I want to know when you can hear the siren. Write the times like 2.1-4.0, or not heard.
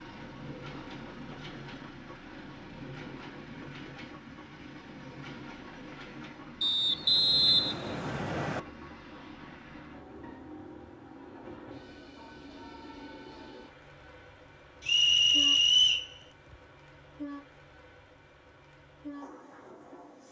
not heard.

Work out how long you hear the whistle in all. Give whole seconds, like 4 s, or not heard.
3 s.